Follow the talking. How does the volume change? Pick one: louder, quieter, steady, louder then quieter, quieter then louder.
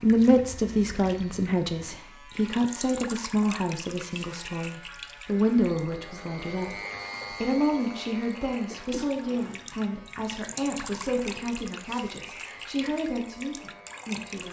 quieter.